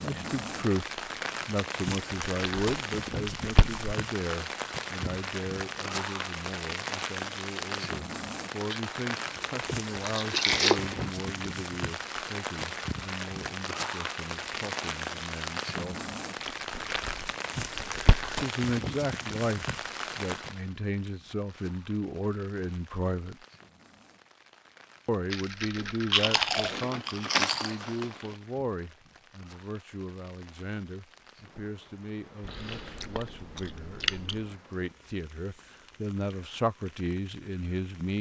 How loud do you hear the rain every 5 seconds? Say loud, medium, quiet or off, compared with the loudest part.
loud, loud, loud, loud, medium, quiet, quiet, quiet.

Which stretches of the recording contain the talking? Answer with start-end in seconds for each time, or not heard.
0.0-16.0, 18.4-23.4, 25.1-38.1.